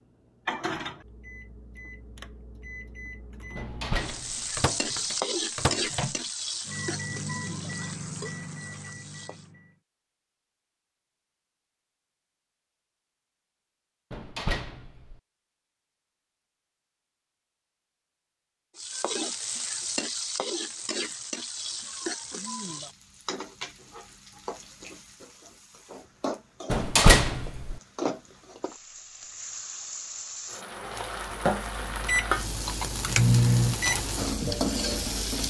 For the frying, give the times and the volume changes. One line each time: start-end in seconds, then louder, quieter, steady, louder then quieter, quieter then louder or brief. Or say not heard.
4.0-9.5 quieter
18.8-35.4 quieter then louder.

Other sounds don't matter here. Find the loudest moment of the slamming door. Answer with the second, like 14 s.
27 s.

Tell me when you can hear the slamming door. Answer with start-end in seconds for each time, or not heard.
3.5-4.6, 14.1-15.2, 26.7-27.8.